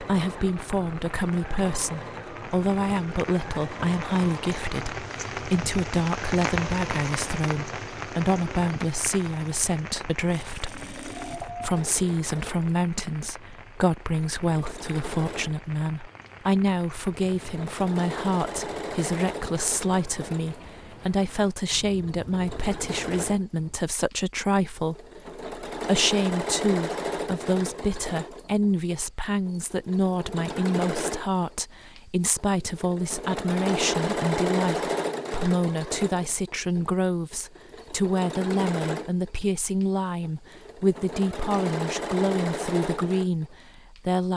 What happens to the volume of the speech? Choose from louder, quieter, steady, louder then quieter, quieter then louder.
steady.